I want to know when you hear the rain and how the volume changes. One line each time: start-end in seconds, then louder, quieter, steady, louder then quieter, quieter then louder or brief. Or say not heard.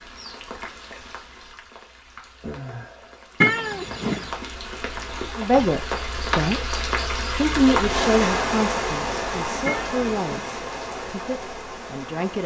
0.0-12.4 louder then quieter.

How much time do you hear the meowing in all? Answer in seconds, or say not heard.
2 s.